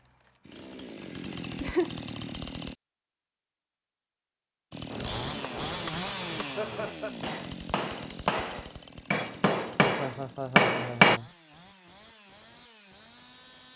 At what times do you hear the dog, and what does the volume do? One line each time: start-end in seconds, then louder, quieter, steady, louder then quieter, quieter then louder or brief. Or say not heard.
not heard.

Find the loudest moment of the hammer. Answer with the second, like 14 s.
11 s.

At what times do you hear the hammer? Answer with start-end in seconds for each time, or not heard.
4.9-11.2.